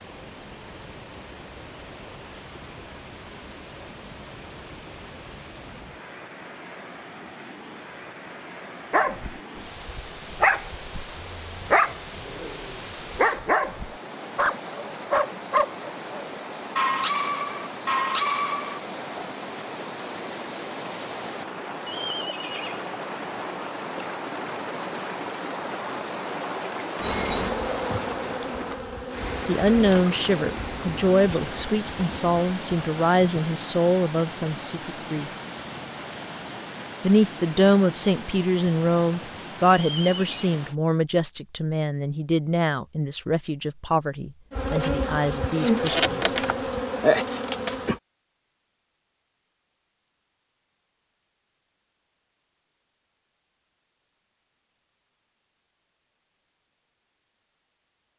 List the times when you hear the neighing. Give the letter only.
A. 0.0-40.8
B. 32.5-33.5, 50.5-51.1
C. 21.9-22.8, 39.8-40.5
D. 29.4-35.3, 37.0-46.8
C.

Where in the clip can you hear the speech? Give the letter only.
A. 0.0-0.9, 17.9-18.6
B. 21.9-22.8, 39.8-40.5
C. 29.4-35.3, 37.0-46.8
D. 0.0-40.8
C.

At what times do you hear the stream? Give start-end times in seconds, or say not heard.
0.0-40.8.